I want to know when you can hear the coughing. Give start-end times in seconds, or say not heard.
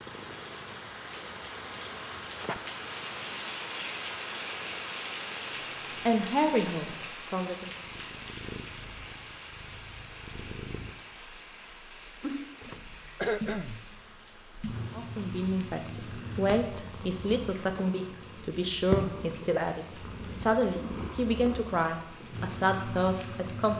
1.9-2.6, 12.6-13.8.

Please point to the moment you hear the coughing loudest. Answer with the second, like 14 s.
13 s.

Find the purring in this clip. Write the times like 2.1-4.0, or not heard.
0.0-23.7.